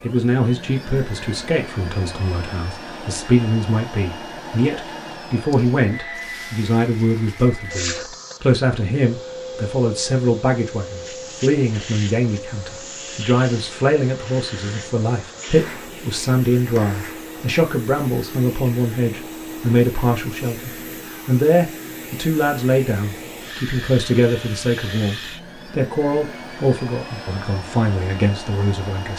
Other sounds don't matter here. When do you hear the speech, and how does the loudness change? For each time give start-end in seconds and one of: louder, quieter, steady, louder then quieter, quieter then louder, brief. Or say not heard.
0.0-29.1 steady.